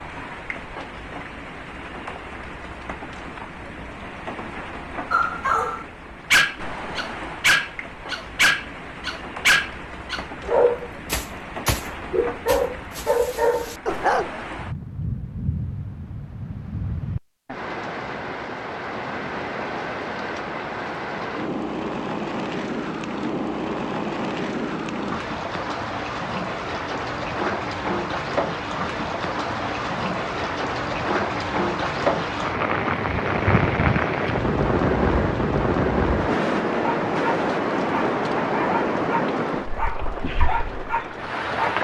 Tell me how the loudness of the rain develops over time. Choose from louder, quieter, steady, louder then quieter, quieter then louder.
louder.